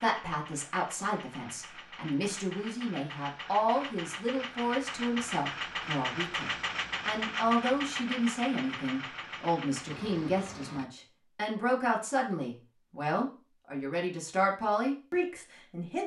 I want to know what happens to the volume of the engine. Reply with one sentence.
The loudness of the engine goes up, then down.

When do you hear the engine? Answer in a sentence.
You can hear the engine from 0.0 to 10.8 s.